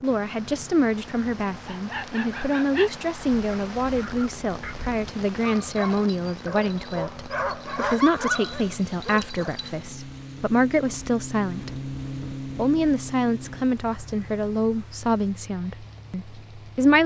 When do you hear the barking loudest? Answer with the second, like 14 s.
8 s.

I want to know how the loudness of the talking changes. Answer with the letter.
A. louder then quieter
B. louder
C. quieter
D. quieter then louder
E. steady
E.